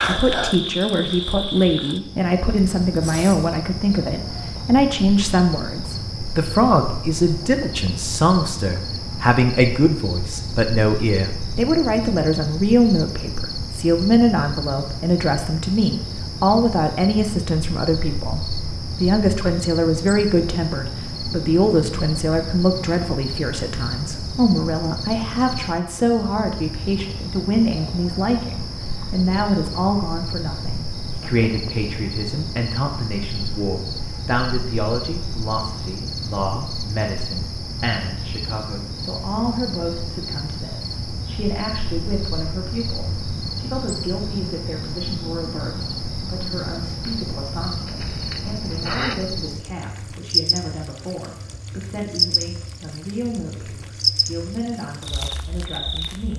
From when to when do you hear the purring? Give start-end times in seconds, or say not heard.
not heard.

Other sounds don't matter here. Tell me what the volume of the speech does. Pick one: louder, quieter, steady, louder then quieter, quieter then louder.
quieter.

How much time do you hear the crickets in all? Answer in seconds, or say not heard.
56 s.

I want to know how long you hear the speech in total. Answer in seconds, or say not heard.
56 s.